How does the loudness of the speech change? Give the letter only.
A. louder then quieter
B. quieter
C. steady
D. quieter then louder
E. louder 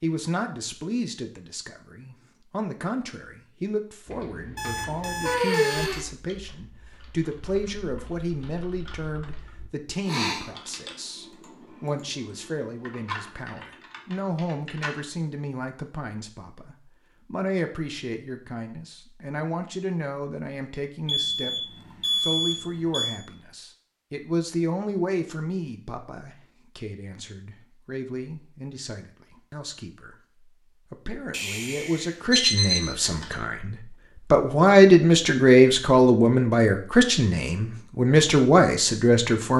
E.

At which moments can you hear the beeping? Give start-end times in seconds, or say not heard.
4.5-6.0, 21.1-23.2, 31.3-33.4.